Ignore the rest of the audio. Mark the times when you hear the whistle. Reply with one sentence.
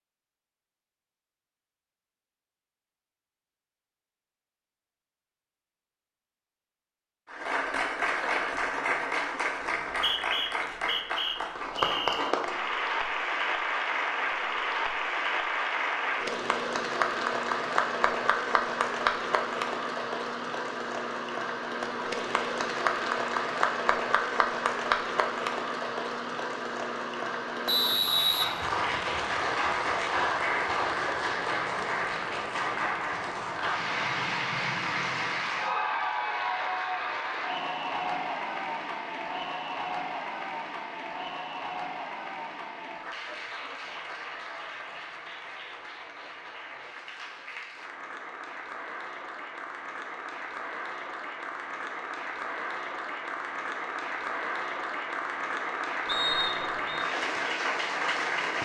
You can hear the whistle from 9.6 to 12.2 s, from 27.6 to 29.1 s and from 56.0 to 57.0 s.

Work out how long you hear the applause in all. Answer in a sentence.
The applause can be heard for 51 seconds in total.